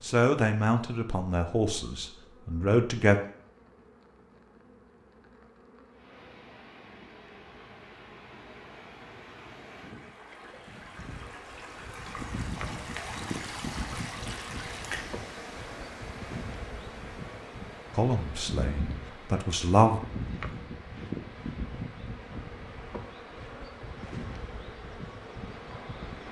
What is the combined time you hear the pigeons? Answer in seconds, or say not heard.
not heard.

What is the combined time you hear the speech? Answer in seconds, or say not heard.
5 s.